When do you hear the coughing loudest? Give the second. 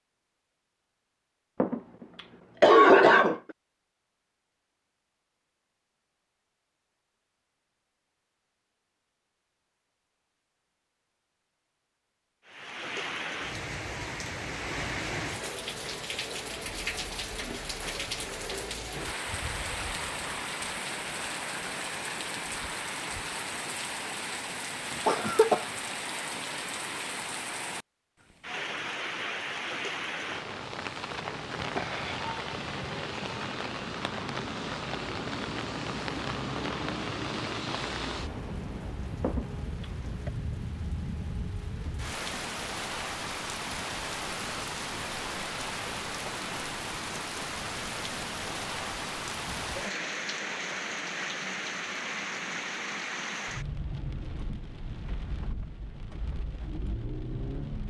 3 s.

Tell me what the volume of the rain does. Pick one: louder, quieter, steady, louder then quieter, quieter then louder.
steady.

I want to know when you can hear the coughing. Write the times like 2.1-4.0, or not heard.
1.6-3.4, 25.1-25.6, 39.2-40.3.